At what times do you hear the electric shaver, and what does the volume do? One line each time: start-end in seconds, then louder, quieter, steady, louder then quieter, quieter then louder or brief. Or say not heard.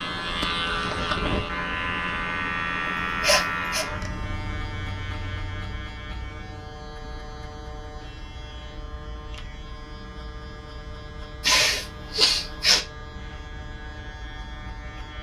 0.0-15.1 quieter.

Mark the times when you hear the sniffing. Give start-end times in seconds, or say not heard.
2.9-3.9, 11.4-12.8.